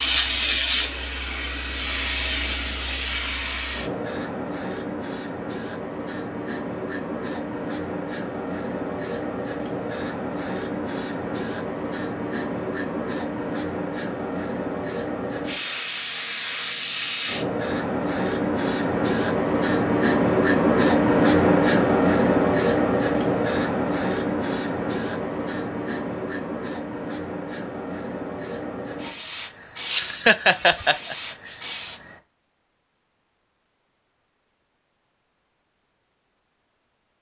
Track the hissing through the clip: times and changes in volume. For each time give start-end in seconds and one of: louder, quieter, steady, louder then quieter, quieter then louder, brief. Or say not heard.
0.0-32.2 louder then quieter.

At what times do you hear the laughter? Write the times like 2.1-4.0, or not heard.
29.9-31.6.